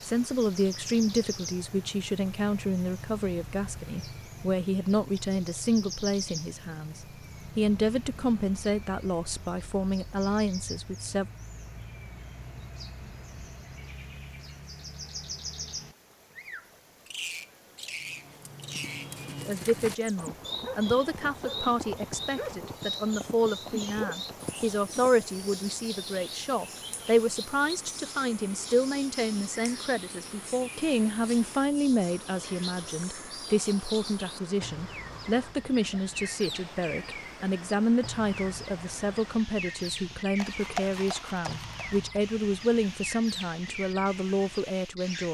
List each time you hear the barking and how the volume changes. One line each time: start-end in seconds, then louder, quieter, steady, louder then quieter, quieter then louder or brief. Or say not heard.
not heard.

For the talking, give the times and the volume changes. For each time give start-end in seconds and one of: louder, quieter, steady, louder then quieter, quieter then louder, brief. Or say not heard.
0.0-11.3 steady
19.4-45.2 steady.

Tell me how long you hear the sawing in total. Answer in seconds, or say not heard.
not heard.